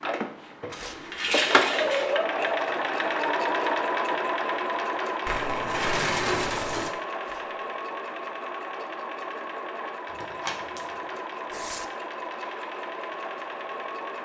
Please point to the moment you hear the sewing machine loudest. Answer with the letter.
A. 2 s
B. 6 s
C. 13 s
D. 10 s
A.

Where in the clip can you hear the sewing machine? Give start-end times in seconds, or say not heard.
0.0-14.1.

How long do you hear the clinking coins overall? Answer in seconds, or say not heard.
4 s.